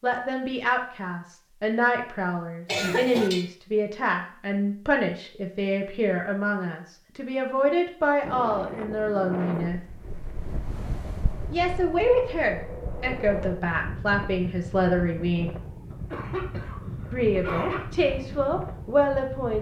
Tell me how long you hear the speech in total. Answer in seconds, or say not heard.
16 s.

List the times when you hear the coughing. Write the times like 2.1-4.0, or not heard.
2.6-3.5, 15.9-17.8.